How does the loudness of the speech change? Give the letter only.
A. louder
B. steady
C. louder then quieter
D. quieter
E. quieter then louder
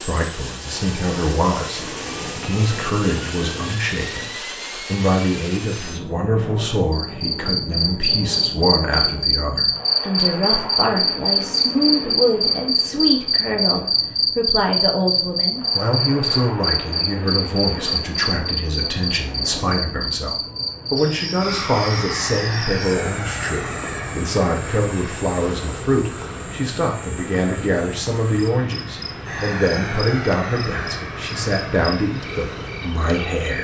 B.